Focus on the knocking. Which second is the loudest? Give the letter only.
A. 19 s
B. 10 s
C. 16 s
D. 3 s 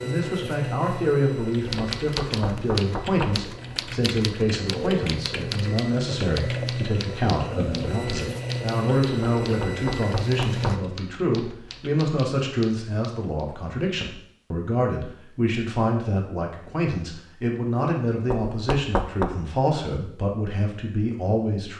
A.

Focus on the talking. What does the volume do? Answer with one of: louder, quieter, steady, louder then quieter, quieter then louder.
steady.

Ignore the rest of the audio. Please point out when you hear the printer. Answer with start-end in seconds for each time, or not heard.
0.0-10.8.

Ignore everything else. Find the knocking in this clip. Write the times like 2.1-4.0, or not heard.
2.0-3.5, 9.4-10.9, 18.3-19.3.